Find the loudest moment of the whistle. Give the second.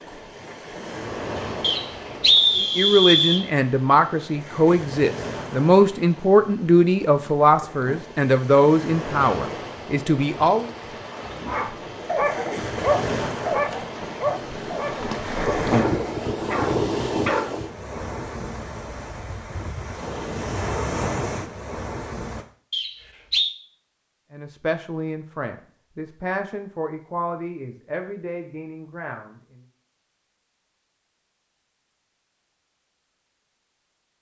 2 s.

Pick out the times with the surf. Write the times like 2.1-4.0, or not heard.
0.0-22.4.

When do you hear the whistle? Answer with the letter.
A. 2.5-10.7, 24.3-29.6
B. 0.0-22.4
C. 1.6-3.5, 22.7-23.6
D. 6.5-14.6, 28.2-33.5
C.